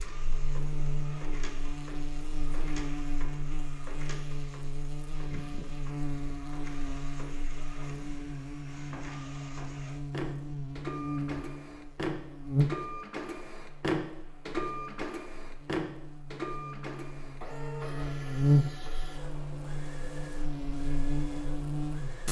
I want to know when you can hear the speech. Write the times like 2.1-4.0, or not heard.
not heard.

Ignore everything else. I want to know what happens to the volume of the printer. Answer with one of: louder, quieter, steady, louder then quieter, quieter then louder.
louder then quieter.